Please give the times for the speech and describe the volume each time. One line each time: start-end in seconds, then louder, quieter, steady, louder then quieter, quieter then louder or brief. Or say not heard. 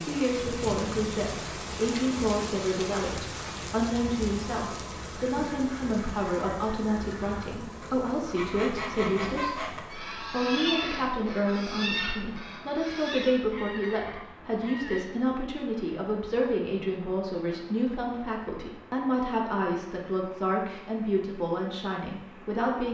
0.0-22.9 steady.